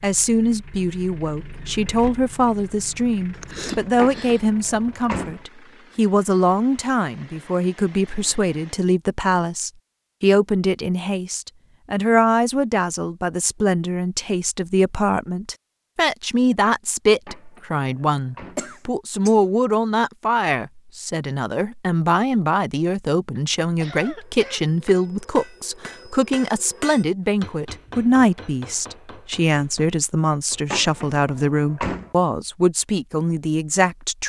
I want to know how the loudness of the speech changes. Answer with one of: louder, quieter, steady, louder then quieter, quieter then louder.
steady.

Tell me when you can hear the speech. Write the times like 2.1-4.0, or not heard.
0.0-34.2.